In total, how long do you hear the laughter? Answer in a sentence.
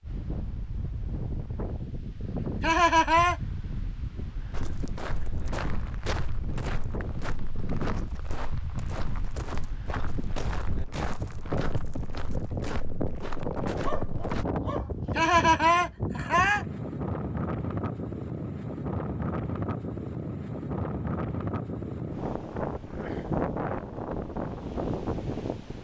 You can hear the laughter for 2 seconds altogether.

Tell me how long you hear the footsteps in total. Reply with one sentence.
You can hear the footsteps for 10 seconds altogether.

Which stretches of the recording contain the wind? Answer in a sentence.
The wind can be heard from 0.0 to 25.7 s.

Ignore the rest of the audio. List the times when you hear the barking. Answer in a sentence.
You can hear the barking from 13.8 to 15.3 s.